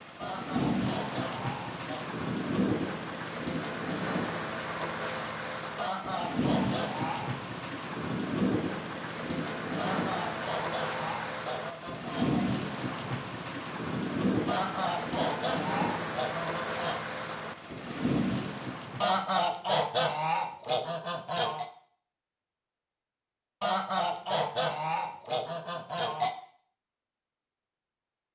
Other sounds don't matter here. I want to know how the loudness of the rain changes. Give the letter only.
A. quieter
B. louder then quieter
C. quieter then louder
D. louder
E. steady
E.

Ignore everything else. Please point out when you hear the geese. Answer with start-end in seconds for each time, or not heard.
0.1-2.0, 5.8-7.2, 9.8-12.4, 14.4-17.0, 19.0-21.6, 23.6-26.3.